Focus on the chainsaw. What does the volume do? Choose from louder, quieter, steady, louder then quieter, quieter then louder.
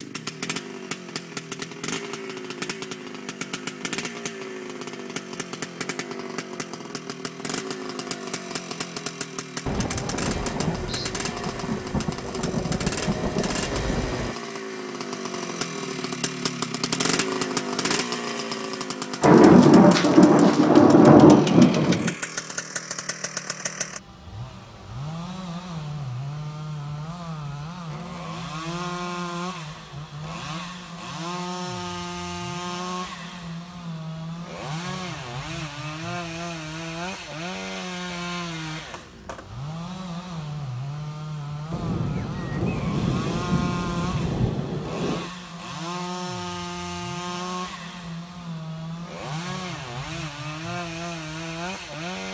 steady.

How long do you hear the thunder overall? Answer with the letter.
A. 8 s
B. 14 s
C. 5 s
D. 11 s
D.